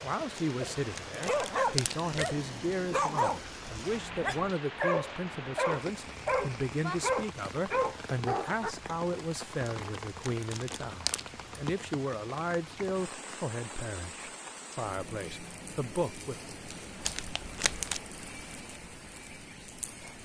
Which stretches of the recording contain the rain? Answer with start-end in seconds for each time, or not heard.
0.0-20.2.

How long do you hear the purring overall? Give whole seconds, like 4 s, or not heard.
not heard.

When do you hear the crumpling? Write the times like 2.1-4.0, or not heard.
0.3-2.4, 9.7-11.3, 17.1-18.0.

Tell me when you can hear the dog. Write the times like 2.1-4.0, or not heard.
0.6-8.8.